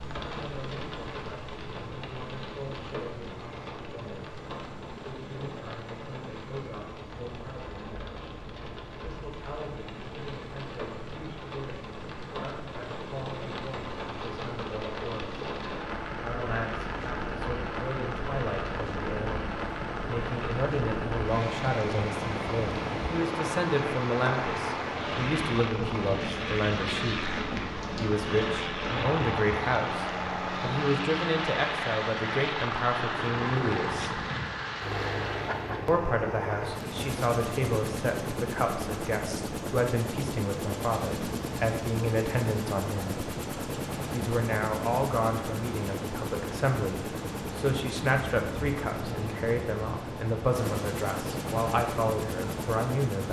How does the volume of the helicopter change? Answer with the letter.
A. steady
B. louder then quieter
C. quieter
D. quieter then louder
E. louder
E.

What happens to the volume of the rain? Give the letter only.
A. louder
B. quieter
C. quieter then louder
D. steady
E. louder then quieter
A.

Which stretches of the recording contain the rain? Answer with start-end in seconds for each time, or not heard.
0.0-35.9.